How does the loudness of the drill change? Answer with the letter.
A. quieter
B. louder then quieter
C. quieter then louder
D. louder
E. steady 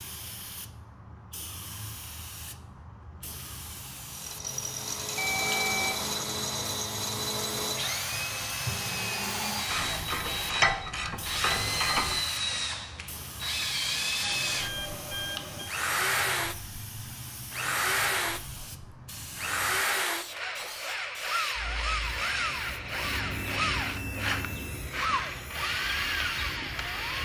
E.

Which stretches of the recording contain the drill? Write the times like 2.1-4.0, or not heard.
4.1-27.2.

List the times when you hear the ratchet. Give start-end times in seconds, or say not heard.
9.7-12.2.